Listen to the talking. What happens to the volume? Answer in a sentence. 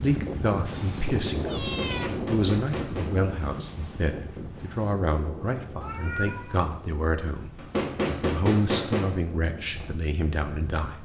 The loudness of the talking stays about the same.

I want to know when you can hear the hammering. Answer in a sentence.
The hammering can be heard from 1.6 to 3.1 s and from 7.5 to 9.2 s.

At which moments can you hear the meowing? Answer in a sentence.
The meowing can be heard from 0.7 to 2.1 s and from 5.8 to 6.7 s.